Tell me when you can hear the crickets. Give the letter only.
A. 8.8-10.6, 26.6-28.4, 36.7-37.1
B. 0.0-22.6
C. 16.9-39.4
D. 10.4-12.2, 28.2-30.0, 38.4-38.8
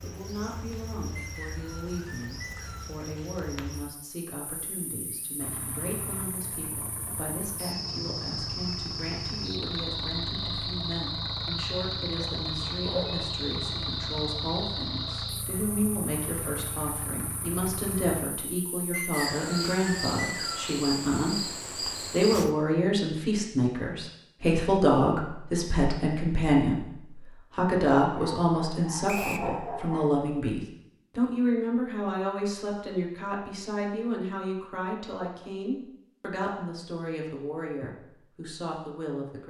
B.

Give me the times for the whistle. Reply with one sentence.
You can hear the whistle from 1.1 to 3.0 s, from 18.9 to 20.7 s and from 29.1 to 29.5 s.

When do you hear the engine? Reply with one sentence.
The engine can be heard from 5.3 to 18.2 s.